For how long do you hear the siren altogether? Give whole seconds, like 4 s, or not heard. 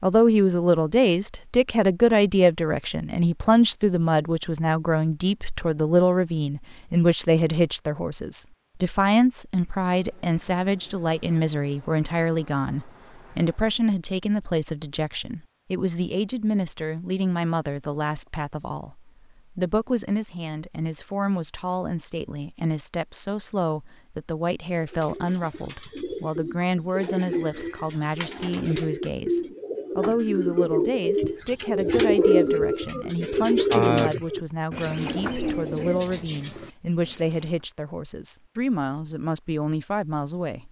not heard.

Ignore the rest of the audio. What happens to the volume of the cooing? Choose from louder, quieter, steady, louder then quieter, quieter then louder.
louder then quieter.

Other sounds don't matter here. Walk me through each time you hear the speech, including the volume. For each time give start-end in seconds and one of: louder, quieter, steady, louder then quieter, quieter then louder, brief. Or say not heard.
0.0-40.6 quieter.